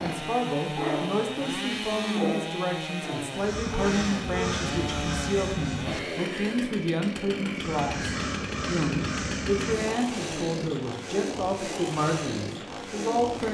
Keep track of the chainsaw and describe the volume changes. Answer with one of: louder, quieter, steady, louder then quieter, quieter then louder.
steady.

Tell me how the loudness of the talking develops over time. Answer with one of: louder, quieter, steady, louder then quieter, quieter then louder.
steady.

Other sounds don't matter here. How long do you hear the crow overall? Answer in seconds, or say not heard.
5 s.